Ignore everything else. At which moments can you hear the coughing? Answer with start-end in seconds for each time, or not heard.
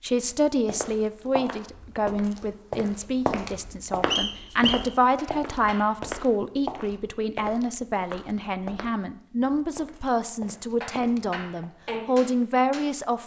not heard.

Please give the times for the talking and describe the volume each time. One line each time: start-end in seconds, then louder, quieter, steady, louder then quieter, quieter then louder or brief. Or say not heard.
0.0-13.2 steady.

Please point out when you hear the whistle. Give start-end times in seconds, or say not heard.
4.1-4.9.